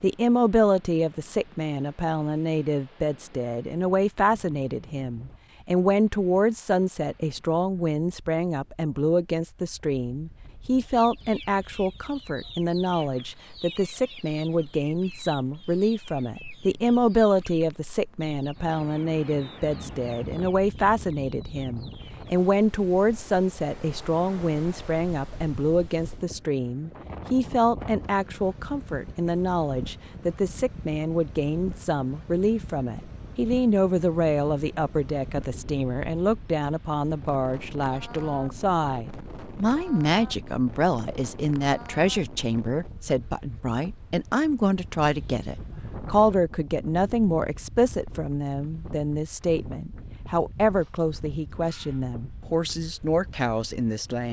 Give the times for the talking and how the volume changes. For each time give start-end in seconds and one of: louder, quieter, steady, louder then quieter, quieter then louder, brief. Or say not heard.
0.0-54.2 steady.